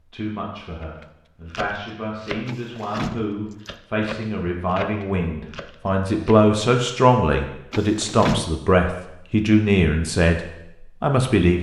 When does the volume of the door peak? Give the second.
8 s.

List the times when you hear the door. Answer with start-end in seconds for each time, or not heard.
2.5-3.7, 7.7-8.5.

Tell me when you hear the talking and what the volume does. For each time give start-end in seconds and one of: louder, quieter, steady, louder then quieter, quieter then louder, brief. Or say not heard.
0.1-10.4 louder
11.0-11.5 brief.